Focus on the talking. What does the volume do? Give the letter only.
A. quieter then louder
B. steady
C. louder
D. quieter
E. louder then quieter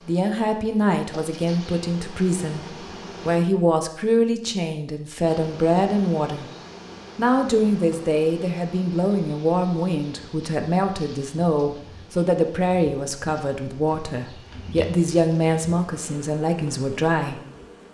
B.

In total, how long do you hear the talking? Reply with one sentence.
The talking can be heard for 17 seconds in total.